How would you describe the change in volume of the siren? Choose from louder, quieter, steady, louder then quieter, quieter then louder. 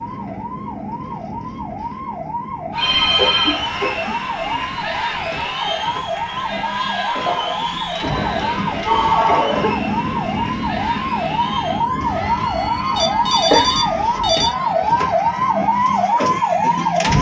louder.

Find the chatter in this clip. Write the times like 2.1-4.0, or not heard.
2.7-17.1.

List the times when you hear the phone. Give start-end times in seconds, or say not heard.
2.8-3.6, 8.8-9.5, 12.9-14.6.